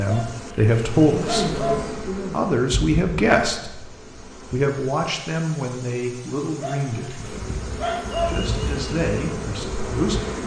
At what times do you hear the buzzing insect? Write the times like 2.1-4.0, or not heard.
0.2-4.6, 7.2-10.4.